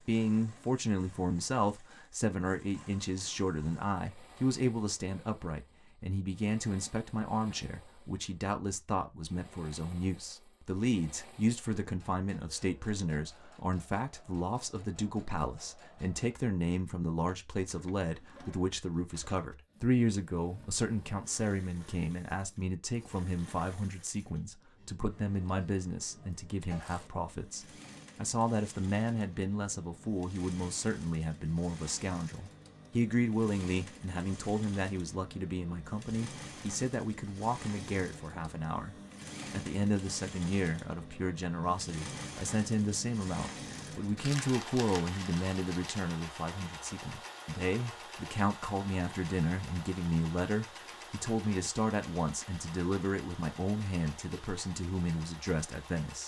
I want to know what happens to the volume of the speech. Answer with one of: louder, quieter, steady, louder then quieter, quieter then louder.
steady.